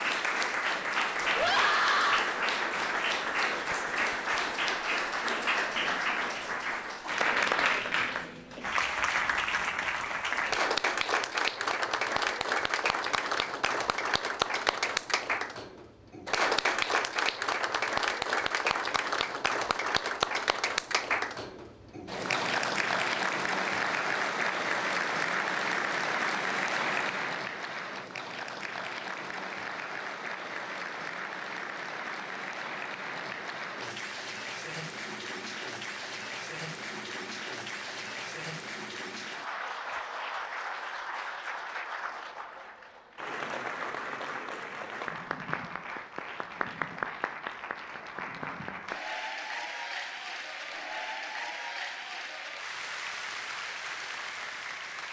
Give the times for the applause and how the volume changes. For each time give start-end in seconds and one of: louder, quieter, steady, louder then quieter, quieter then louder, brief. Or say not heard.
0.0-55.0 quieter.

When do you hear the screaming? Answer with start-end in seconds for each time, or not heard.
1.3-2.2.